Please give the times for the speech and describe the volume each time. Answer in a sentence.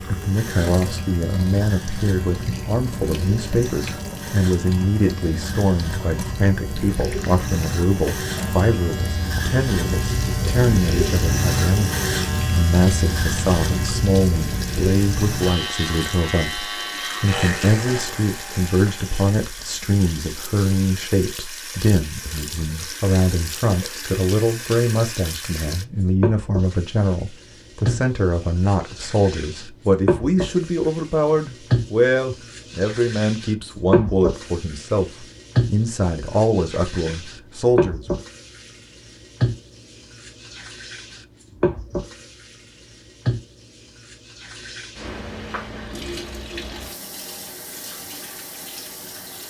You can hear the speech from 0.1 to 38.2 s, at a steady volume.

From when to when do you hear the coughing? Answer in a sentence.
You can't hear the coughing here.